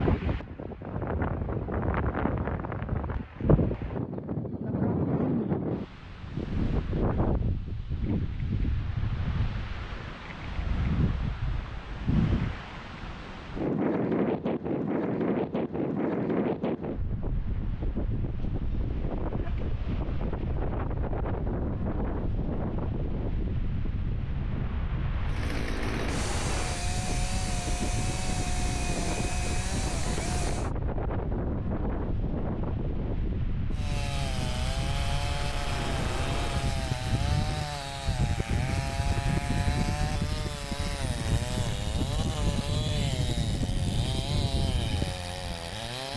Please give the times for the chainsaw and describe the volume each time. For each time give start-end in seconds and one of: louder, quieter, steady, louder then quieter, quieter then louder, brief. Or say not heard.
25.2-30.7 steady
33.7-46.1 steady.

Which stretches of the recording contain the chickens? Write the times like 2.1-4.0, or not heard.
not heard.